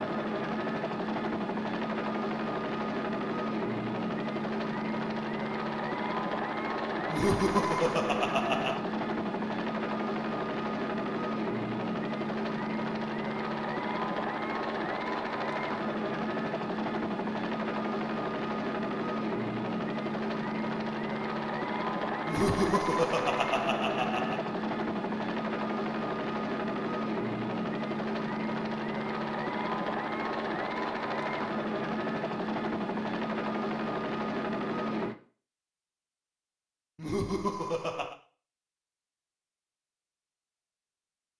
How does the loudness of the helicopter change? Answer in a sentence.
The loudness of the helicopter stays about the same.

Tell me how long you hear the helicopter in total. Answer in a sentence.
You can hear the helicopter for 35 seconds altogether.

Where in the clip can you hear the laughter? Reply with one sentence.
The laughter can be heard from 7.0 to 8.8 s, from 22.2 to 24.4 s and from 37.0 to 38.1 s.